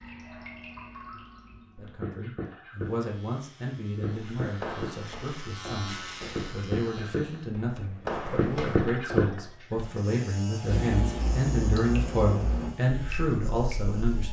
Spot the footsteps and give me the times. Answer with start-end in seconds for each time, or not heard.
4.1-9.6.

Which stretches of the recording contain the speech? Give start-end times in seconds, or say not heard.
1.8-14.2.